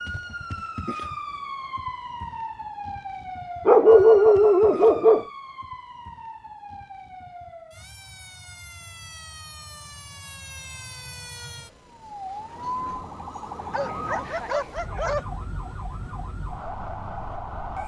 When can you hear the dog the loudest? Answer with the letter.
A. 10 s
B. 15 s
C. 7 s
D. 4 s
D.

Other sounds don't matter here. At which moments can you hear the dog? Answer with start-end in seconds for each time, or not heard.
3.6-5.2, 13.7-15.2.